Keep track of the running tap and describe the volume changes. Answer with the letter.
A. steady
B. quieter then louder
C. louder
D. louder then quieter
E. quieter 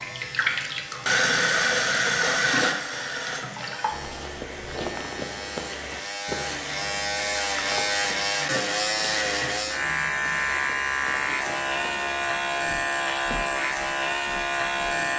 E.